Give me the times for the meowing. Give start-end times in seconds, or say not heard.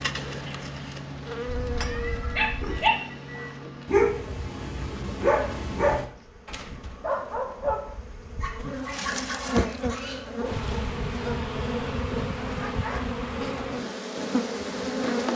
1.4-2.8.